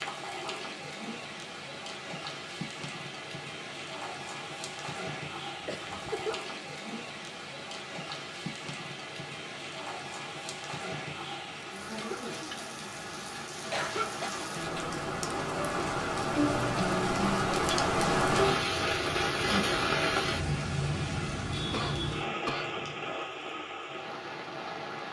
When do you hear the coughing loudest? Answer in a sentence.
The loudest moment of the coughing is at 14 seconds.